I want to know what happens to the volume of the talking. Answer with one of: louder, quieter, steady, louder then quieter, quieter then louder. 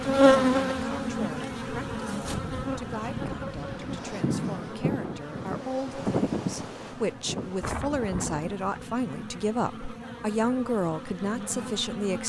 louder.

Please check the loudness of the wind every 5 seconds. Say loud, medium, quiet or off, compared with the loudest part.
loud, loud, off.